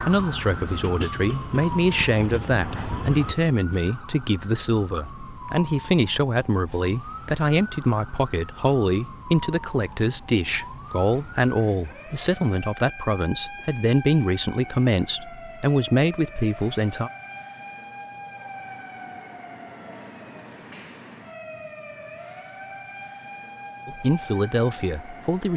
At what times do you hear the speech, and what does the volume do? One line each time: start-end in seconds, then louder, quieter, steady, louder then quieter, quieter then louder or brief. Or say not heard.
0.0-17.1 steady
23.9-25.5 brief.